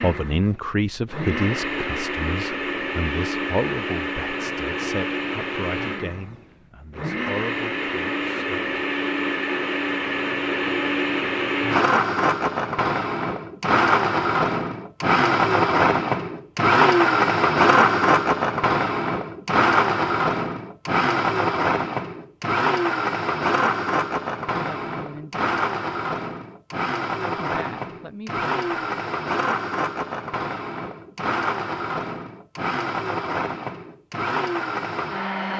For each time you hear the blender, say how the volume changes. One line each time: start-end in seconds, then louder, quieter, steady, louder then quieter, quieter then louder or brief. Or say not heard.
0.0-35.5 louder then quieter.